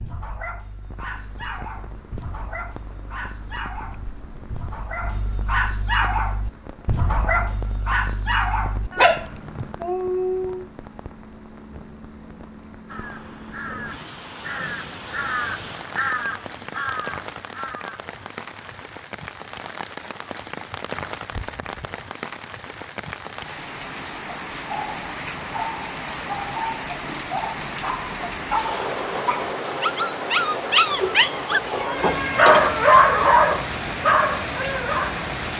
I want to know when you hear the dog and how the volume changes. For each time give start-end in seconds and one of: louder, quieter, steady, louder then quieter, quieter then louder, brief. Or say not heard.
0.0-10.7 louder
24.7-35.2 louder.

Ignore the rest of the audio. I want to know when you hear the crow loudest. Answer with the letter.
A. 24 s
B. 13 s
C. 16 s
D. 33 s
C.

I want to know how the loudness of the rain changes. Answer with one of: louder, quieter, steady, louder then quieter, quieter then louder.
louder.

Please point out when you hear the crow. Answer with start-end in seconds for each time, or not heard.
12.8-18.9.